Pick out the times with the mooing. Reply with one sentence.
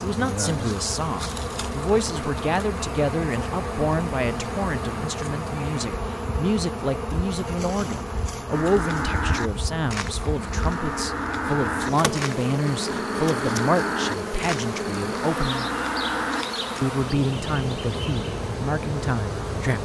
The mooing can be heard from 8.4 to 16.9 s.